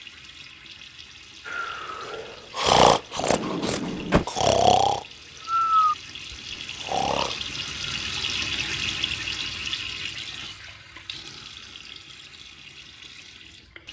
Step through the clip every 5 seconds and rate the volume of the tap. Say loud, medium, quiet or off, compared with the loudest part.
quiet, loud, medium.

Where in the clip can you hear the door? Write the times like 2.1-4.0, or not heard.
3.2-4.2.